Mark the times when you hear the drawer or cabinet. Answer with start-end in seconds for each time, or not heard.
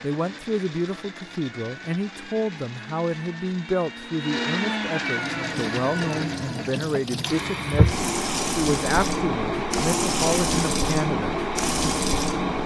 not heard.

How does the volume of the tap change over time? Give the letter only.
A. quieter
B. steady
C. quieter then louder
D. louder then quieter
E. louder
E.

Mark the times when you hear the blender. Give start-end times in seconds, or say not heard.
0.0-12.6.